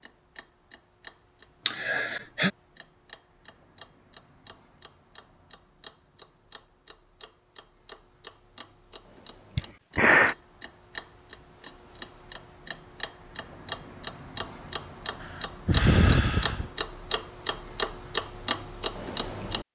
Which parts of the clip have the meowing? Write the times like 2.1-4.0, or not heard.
not heard.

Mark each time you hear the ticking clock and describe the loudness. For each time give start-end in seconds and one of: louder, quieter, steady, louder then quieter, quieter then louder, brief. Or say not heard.
0.0-19.6 louder.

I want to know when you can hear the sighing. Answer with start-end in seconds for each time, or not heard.
1.6-2.5, 9.6-10.3, 15.2-16.7.